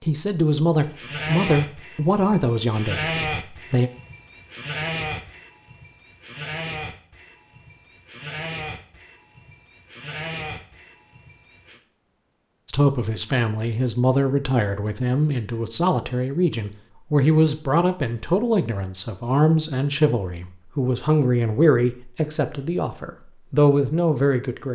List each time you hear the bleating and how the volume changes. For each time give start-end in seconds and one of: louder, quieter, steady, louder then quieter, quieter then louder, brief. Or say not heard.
0.8-11.8 quieter.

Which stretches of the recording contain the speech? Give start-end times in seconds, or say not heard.
0.0-3.9, 12.7-24.6.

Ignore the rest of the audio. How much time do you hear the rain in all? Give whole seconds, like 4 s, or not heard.
not heard.